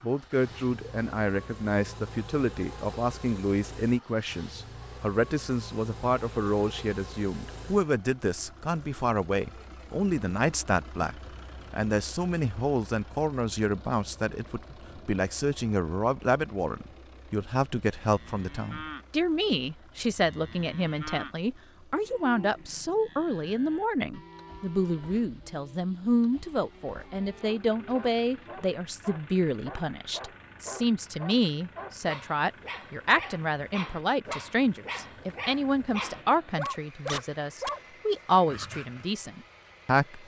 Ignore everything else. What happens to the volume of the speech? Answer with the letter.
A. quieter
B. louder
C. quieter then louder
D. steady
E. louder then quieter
D.